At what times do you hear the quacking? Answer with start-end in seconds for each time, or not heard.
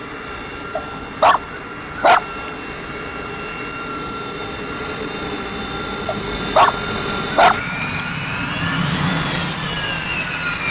not heard.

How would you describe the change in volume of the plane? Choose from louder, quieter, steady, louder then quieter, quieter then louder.
louder.